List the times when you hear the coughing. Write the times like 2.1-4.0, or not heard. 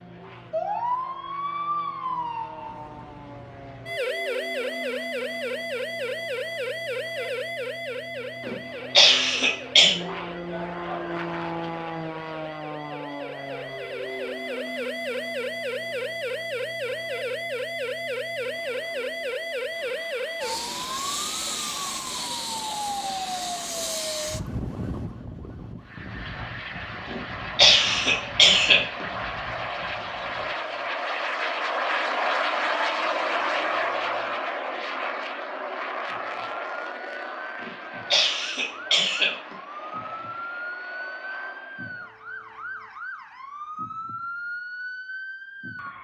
8.4-9.9, 27.1-29.1, 37.6-39.5.